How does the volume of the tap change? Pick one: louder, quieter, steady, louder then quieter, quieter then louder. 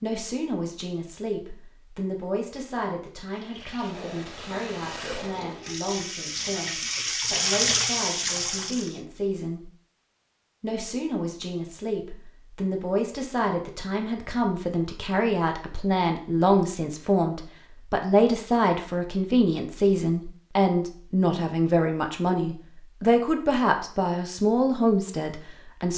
louder.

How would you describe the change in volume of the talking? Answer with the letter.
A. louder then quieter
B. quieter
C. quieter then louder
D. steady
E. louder
E.